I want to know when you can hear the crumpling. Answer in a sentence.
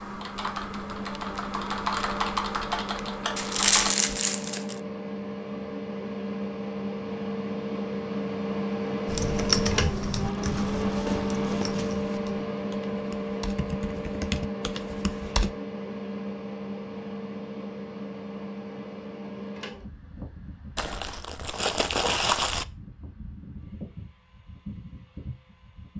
The crumpling can be heard from 3.4 to 4.8 s, from 10.4 to 12.2 s and from 20.8 to 22.6 s.